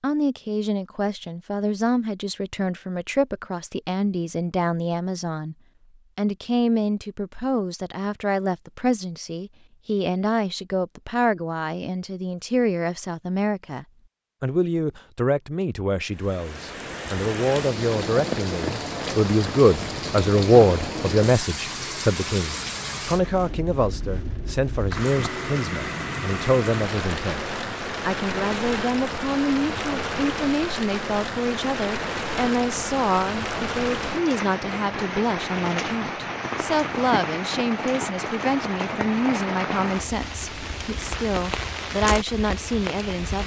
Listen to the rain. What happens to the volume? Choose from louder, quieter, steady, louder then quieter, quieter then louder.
steady.